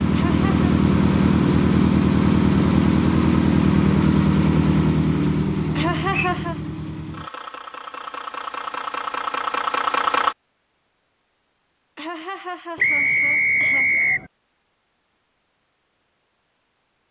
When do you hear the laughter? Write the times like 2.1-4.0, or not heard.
0.1-0.7, 5.8-6.6, 11.9-14.1.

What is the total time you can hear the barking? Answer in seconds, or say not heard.
not heard.